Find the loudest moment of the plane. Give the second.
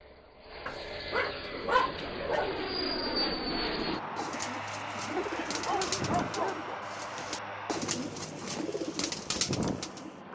3 s.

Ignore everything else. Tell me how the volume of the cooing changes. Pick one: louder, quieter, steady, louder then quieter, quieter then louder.
louder.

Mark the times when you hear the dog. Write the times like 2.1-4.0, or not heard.
0.7-2.6, 5.2-6.8.